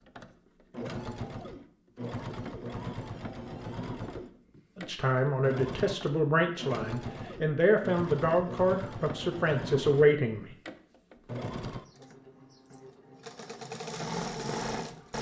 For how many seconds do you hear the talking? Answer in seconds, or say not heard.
6 s.